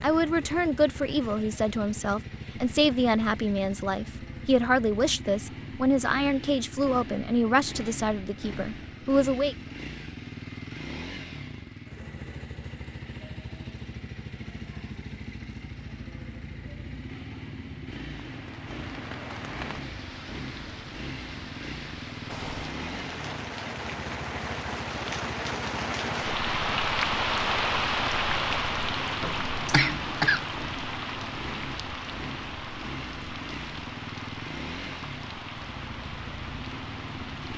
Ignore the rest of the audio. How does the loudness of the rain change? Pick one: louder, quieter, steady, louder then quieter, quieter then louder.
louder then quieter.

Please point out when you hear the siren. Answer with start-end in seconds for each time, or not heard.
not heard.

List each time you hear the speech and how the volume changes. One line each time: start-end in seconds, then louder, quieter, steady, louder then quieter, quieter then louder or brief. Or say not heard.
0.0-9.6 steady.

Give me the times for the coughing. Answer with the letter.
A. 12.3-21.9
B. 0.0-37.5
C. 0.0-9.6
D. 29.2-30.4
D.